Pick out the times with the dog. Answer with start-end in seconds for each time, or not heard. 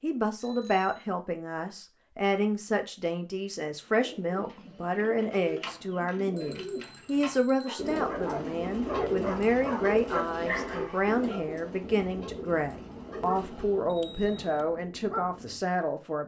7.7-15.6.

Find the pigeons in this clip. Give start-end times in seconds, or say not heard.
3.9-14.0.